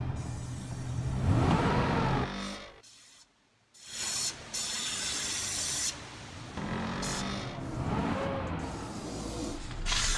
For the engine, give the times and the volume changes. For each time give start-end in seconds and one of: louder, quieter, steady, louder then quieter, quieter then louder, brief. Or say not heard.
0.0-2.3 brief
4.9-10.1 louder then quieter.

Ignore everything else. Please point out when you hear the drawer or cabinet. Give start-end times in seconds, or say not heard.
1.9-2.9, 6.5-7.7.